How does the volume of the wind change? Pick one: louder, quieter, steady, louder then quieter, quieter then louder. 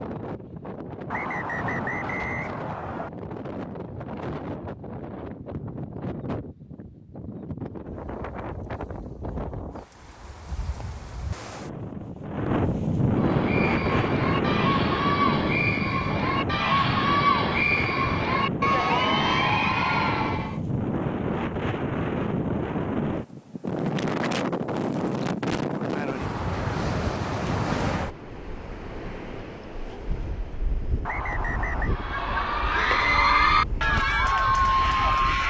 louder then quieter.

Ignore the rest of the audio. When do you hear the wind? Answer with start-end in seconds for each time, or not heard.
0.0-35.4.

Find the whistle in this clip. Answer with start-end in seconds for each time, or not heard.
1.1-3.1, 31.1-31.9.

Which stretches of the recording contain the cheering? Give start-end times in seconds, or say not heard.
13.2-20.6, 31.9-35.4.